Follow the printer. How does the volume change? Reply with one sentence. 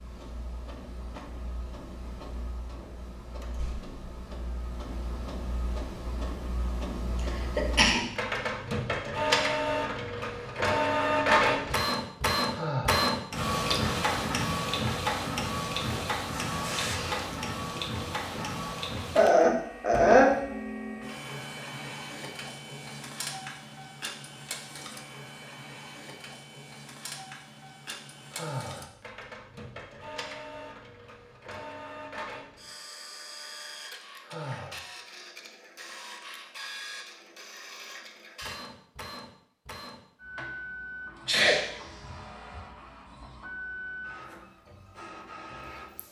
The loudness of the printer goes up, then down.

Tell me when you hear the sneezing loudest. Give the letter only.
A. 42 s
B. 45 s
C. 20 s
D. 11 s
C.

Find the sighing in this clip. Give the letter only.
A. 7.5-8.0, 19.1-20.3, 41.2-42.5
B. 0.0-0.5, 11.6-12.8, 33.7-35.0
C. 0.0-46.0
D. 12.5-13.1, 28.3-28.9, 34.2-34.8
D.